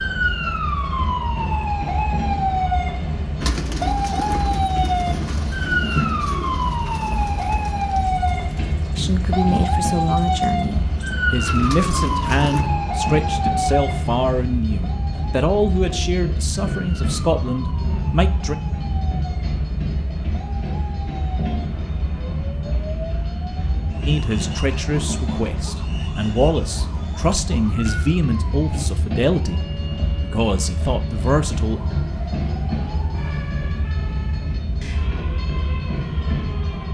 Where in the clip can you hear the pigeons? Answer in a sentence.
You can hear the pigeons from 3.4 to 12.7 s.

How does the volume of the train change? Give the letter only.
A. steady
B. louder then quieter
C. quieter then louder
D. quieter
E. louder
A.